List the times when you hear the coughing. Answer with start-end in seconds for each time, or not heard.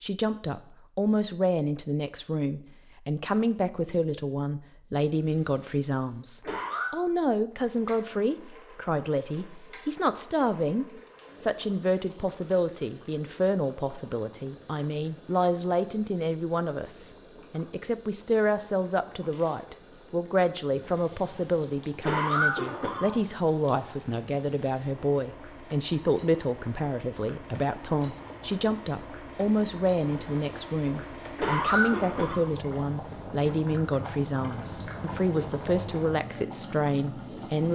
5.1-6.9, 20.7-23.1, 30.1-32.4.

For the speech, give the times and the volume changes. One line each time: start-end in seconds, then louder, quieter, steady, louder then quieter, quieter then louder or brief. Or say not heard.
0.0-37.7 steady.